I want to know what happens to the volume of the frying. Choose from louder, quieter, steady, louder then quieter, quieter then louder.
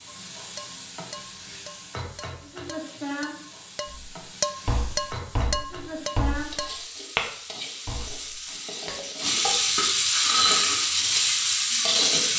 louder.